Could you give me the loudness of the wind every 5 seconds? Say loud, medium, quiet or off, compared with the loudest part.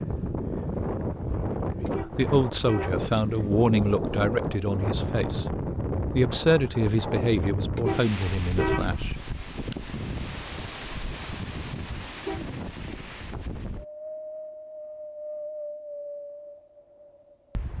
loud, loud, medium, medium.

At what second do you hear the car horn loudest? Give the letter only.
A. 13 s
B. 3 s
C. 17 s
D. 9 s
D.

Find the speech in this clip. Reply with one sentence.
The speech can be heard from 1.8 to 9.3 s.